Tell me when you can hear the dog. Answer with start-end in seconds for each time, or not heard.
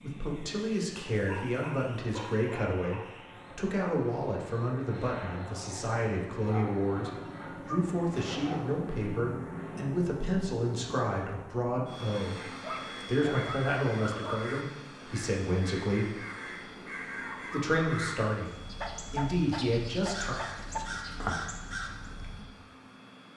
1.1-3.0, 6.5-8.8, 12.6-14.4, 18.8-20.8.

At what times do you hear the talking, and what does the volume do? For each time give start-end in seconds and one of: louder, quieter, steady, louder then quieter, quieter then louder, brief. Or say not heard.
0.0-16.1 steady
17.5-20.4 brief.